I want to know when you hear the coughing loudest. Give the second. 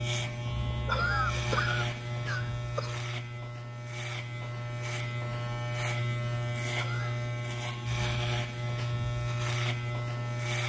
1 s.